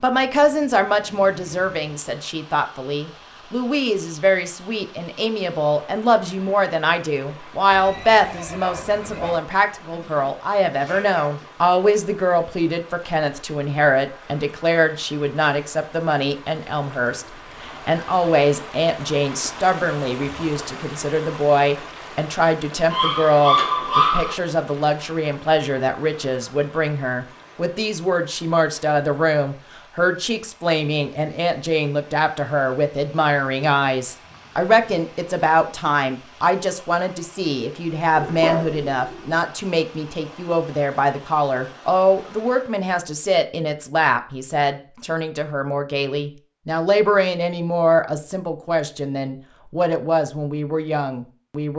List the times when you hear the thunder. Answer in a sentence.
You can't hear the thunder here.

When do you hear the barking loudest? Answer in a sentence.
The volume of the barking peaks at 24 seconds.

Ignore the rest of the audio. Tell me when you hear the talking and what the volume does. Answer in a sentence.
You can hear the talking from 0.0 to 51.7 s, at a steady volume.